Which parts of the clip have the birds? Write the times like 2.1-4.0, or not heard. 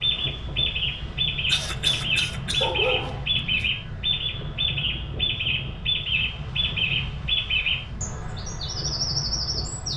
0.0-9.9.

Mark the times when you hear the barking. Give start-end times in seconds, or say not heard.
2.6-3.7.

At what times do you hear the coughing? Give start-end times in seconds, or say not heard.
1.4-2.7.